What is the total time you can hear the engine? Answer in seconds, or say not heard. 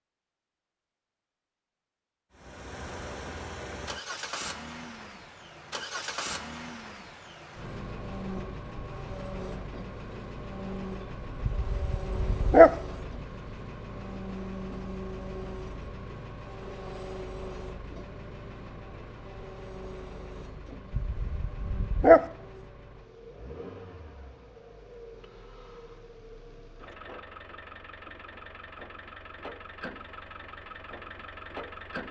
30 s.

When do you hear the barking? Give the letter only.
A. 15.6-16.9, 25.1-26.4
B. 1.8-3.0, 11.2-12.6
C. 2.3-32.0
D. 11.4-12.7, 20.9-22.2
D.